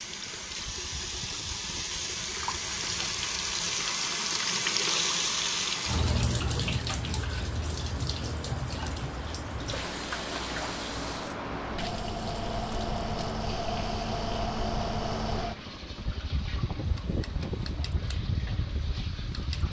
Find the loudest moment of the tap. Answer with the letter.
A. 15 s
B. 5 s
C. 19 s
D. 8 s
B.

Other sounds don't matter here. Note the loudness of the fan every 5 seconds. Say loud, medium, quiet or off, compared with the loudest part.
quiet, medium, loud, loud.